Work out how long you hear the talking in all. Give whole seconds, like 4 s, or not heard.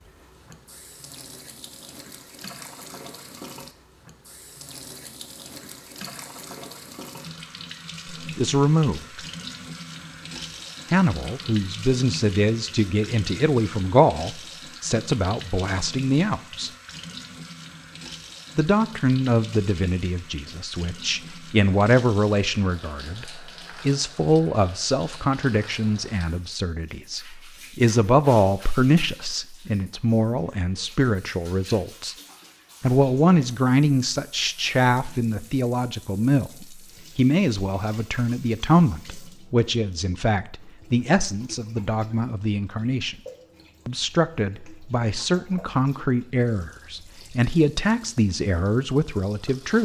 37 s.